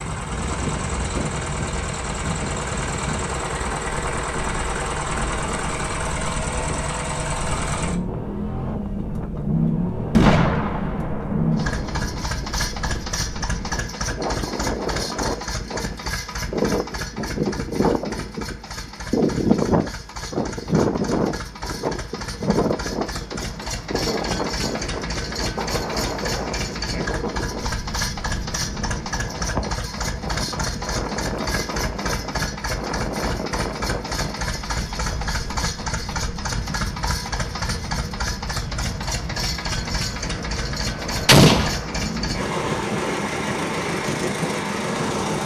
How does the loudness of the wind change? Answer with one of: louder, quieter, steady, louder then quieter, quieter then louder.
louder then quieter.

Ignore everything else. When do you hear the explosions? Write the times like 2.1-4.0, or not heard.
10.2-12.2, 41.2-41.8.